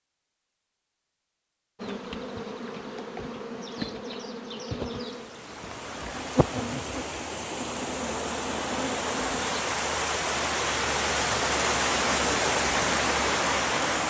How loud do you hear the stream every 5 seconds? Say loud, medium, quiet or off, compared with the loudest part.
off, medium, loud.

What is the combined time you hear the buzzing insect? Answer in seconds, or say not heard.
8 s.